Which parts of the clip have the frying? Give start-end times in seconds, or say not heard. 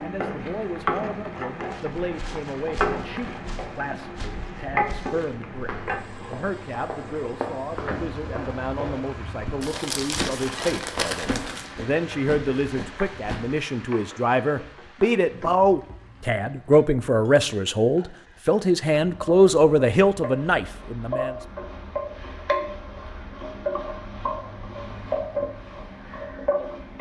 0.0-26.9.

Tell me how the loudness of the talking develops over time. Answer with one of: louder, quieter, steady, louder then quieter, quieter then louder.
louder.